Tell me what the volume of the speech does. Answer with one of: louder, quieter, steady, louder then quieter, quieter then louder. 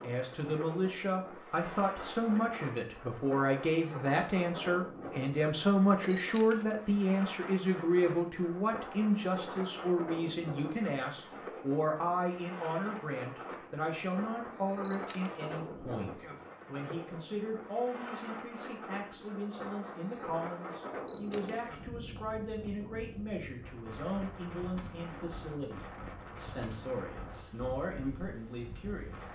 quieter.